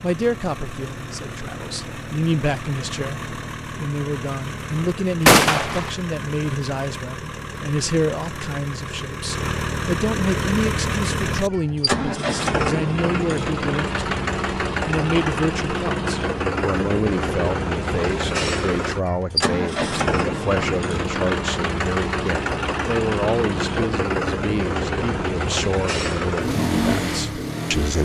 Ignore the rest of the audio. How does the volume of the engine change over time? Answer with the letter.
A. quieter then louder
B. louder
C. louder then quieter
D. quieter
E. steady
B.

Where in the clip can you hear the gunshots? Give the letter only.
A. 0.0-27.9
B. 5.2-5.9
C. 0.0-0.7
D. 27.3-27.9
B.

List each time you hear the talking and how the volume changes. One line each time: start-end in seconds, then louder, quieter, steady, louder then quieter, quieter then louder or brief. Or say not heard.
0.0-27.9 steady.